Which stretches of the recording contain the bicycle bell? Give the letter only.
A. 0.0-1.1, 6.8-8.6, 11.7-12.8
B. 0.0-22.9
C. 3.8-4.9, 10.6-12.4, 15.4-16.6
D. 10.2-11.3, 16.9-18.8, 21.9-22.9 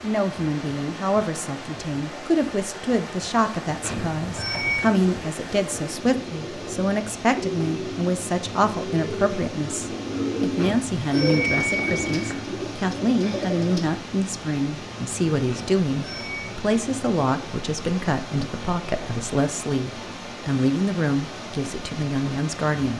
C.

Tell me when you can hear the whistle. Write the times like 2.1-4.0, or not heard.
not heard.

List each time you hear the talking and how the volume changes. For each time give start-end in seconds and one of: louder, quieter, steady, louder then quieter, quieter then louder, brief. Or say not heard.
0.0-22.9 steady.